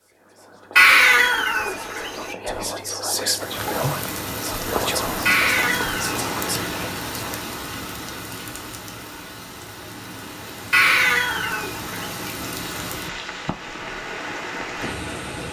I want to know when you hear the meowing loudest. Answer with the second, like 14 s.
1 s.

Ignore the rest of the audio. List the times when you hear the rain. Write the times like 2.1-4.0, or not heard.
3.3-15.4.